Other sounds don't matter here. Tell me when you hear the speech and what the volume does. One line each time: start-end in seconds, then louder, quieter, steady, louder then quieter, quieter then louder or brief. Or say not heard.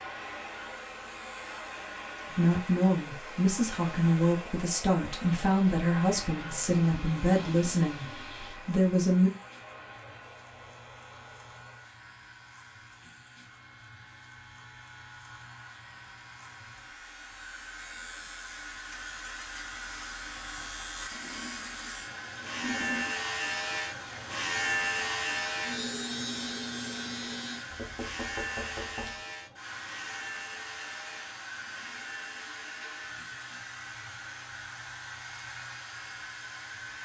2.3-9.3 steady.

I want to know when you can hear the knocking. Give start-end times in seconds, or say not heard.
27.7-29.2.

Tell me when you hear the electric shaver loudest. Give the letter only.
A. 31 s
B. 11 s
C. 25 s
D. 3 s
C.